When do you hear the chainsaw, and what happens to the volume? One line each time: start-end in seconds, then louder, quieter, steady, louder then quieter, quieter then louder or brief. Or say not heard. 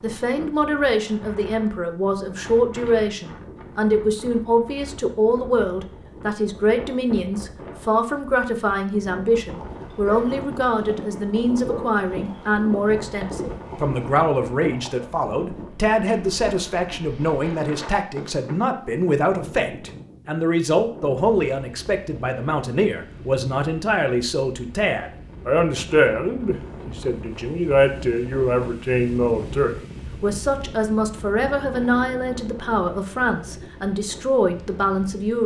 not heard.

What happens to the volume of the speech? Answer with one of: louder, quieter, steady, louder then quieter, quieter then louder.
steady.